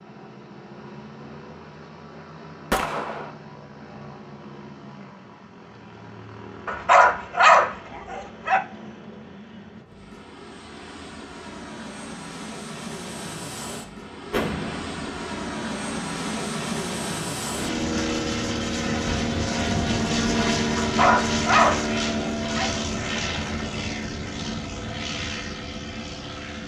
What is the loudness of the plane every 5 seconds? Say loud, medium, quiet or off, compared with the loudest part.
quiet, quiet, medium, loud, loud, medium.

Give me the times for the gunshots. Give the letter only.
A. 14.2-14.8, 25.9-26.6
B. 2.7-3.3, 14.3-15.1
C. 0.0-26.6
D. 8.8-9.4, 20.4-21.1
B.